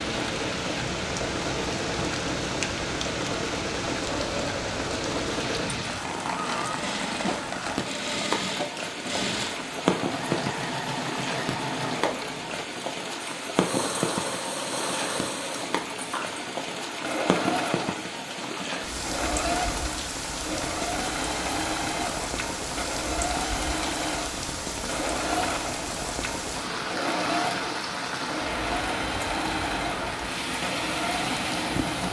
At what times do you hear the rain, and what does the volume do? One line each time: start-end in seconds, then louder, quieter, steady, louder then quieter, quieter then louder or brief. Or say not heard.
0.0-32.0 steady.